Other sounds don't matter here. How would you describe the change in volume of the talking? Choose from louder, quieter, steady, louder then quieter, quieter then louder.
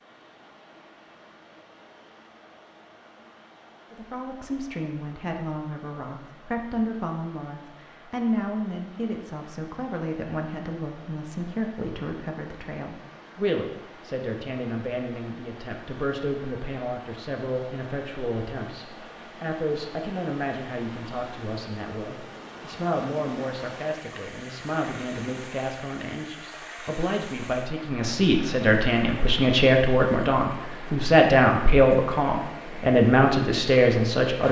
louder.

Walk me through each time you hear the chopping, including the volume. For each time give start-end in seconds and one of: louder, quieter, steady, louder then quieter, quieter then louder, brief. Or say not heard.
not heard.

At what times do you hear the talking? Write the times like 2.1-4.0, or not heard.
3.9-34.4.